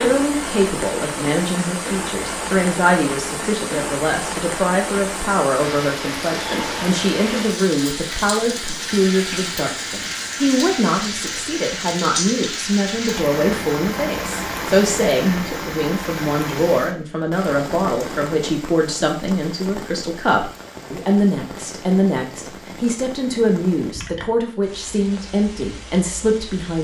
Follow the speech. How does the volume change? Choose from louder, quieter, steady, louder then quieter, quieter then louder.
steady.